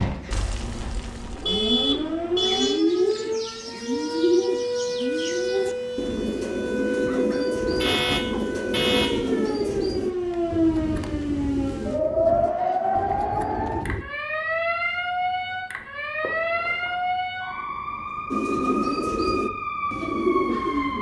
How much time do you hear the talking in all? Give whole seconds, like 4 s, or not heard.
not heard.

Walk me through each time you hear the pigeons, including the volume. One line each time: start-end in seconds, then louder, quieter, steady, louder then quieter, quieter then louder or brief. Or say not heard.
2.4-14.1 quieter
18.3-20.9 brief.